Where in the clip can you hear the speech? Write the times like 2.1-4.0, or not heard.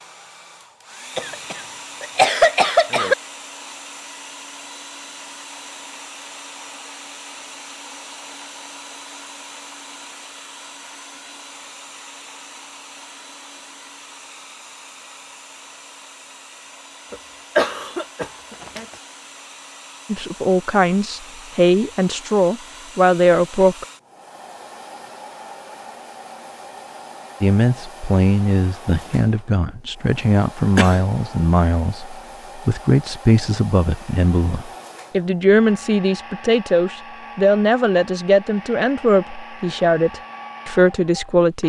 20.1-23.9, 27.4-41.6.